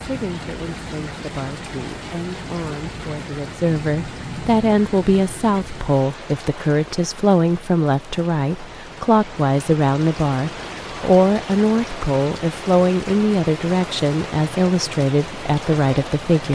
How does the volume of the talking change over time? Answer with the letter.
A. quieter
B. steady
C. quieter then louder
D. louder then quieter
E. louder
E.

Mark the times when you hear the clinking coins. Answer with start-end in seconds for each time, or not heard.
not heard.